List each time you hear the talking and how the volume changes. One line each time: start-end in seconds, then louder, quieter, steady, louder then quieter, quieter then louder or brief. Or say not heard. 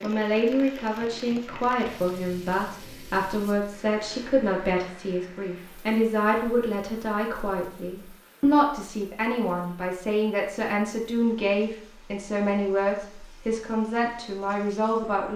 0.0-15.3 steady.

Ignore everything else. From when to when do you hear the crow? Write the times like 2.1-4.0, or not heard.
not heard.